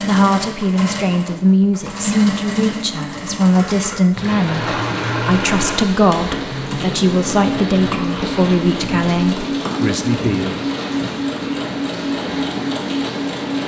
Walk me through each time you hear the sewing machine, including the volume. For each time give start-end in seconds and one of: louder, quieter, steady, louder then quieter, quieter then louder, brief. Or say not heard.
0.0-13.6 steady.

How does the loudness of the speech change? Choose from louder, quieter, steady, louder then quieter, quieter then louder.
steady.